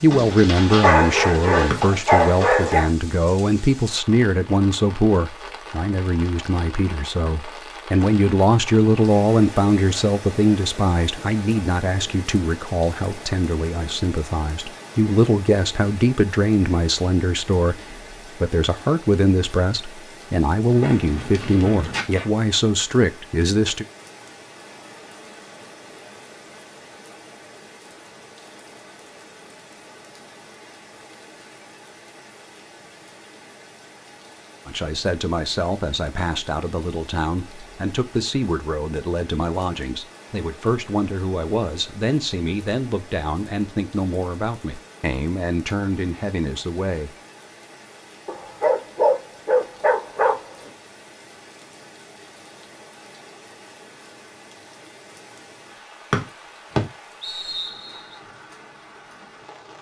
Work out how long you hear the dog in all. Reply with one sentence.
You can hear the dog for 7 seconds altogether.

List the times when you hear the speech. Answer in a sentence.
The speech can be heard from 0.0 to 23.9 s and from 34.6 to 47.1 s.